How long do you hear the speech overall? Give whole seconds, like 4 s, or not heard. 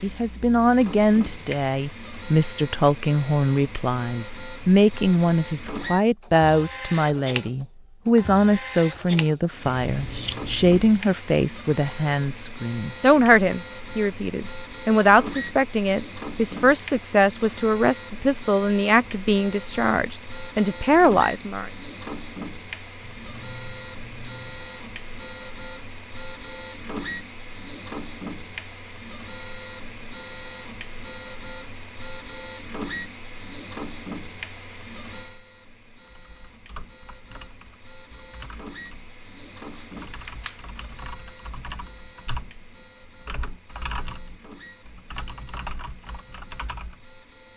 22 s.